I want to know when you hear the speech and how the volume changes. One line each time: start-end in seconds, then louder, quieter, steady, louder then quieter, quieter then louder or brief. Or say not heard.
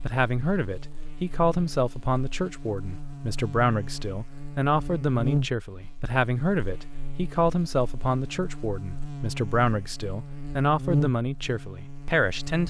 0.0-12.6 steady.